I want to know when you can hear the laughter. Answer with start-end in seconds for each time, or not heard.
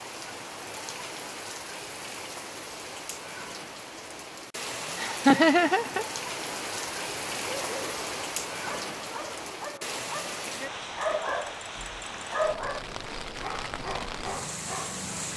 5.0-6.0.